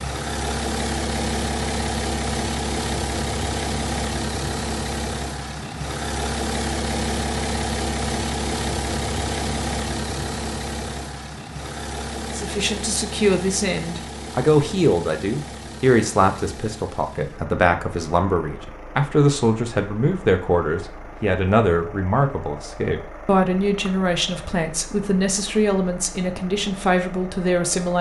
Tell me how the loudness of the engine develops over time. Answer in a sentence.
The loudness of the engine goes down.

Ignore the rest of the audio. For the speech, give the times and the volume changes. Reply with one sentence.
You can hear the speech from 12.3 to 27.9 s, at a steady volume.